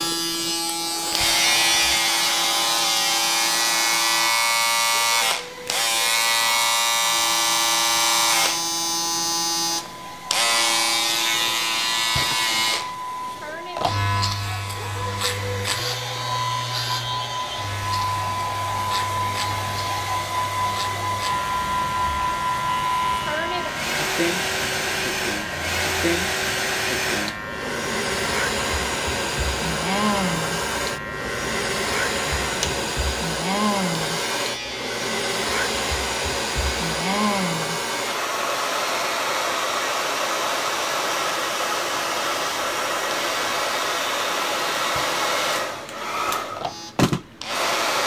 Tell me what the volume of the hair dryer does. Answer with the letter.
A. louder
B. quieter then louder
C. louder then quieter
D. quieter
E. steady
A.